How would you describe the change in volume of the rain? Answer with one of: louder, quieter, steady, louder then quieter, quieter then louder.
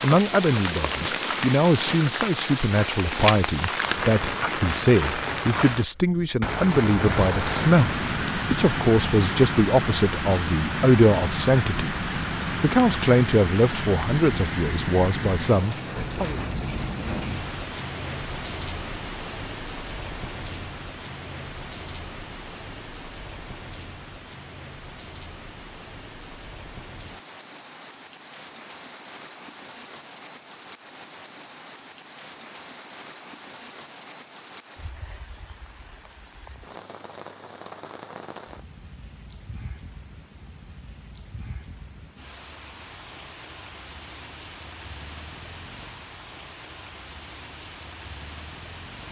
quieter.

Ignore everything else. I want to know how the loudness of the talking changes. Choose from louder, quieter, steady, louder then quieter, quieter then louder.
steady.